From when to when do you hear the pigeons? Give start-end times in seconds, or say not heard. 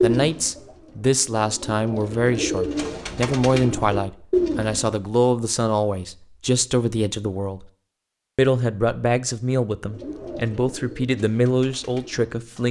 0.0-5.0, 9.8-12.6.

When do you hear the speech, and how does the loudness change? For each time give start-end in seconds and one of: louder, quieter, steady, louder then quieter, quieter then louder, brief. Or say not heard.
0.0-7.7 steady
8.3-12.6 steady.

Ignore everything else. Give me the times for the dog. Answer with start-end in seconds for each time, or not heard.
not heard.